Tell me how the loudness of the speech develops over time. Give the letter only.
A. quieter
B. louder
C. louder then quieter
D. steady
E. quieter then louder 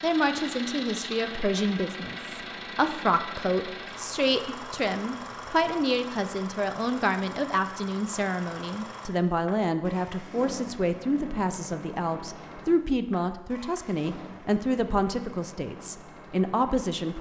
D.